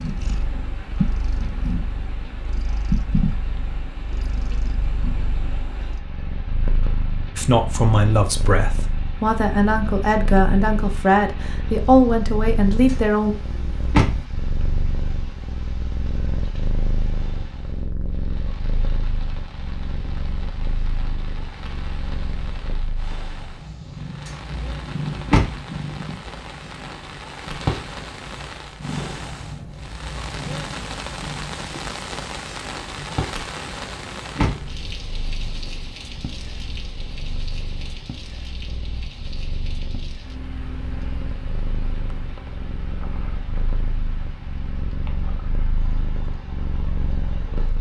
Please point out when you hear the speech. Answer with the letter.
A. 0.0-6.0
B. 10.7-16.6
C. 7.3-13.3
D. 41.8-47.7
C.